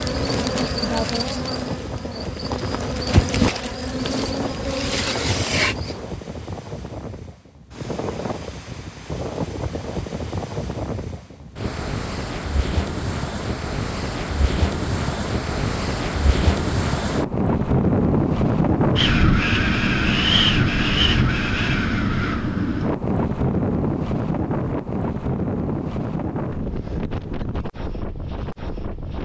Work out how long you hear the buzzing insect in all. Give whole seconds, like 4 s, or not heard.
6 s.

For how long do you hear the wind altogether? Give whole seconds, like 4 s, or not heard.
29 s.